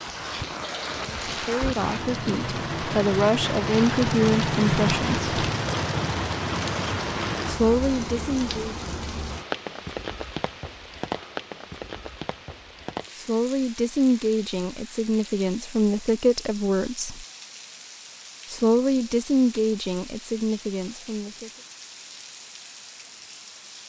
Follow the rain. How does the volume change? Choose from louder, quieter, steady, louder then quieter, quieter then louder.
quieter.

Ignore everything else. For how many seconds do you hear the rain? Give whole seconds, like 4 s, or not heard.
24 s.